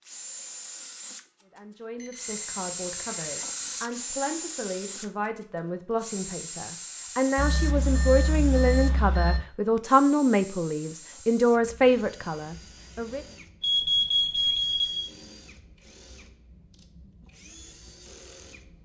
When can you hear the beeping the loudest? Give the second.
14 s.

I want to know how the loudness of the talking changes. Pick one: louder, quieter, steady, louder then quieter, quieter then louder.
louder.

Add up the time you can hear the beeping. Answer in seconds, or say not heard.
5 s.